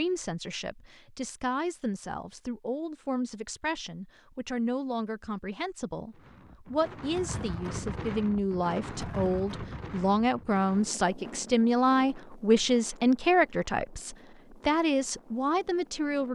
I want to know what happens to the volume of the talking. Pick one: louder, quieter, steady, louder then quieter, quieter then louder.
louder.